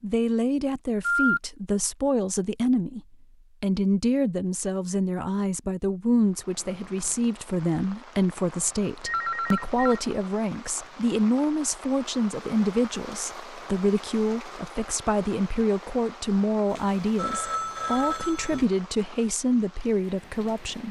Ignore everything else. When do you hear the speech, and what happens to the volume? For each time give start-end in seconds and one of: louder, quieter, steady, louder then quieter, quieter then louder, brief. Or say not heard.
0.0-20.8 steady.